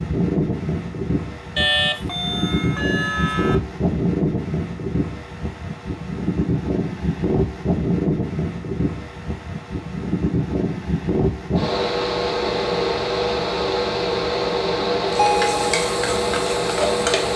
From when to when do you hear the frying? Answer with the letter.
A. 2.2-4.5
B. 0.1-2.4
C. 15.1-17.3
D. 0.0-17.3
C.